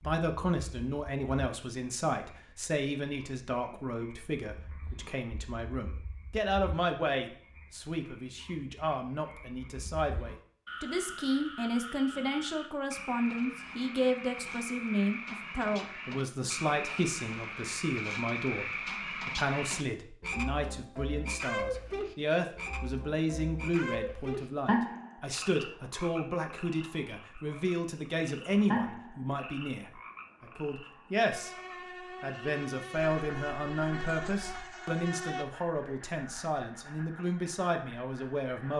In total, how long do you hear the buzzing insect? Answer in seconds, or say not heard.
4 s.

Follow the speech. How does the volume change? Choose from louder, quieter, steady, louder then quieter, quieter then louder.
steady.